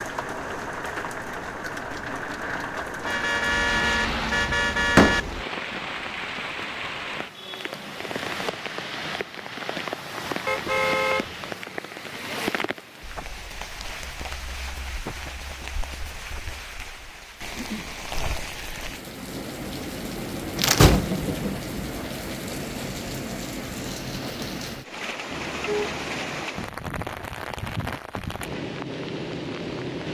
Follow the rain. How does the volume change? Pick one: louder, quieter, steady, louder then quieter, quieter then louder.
steady.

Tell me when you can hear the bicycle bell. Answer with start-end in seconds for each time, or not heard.
not heard.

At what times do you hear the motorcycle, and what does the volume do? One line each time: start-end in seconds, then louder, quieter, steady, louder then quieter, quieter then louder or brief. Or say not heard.
not heard.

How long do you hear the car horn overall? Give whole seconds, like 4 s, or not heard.
4 s.